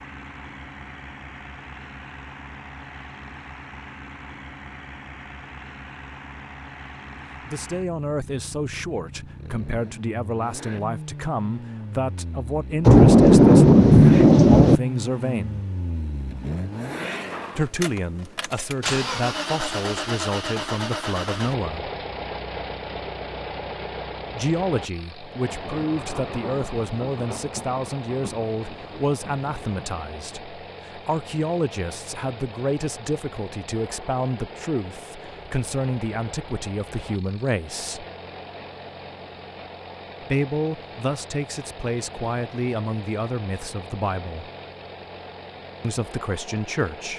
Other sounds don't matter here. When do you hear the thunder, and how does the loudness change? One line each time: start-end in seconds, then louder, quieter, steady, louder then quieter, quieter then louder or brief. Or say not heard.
12.8-14.8 brief
25.5-30.1 quieter.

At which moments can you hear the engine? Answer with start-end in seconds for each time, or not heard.
0.0-47.1.